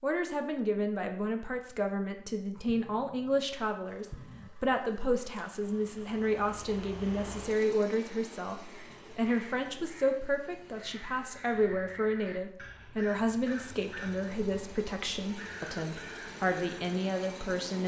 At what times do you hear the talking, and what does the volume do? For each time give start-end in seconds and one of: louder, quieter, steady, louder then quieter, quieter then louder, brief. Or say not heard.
0.0-17.8 steady.